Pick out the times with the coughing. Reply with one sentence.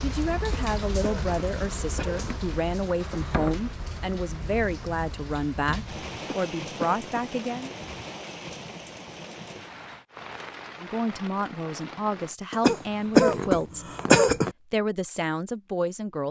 The coughing can be heard from 0.4 to 2.3 s, from 6.2 to 7.2 s and from 12.5 to 14.5 s.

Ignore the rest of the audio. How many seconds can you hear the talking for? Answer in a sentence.
The talking can be heard for 12 seconds in total.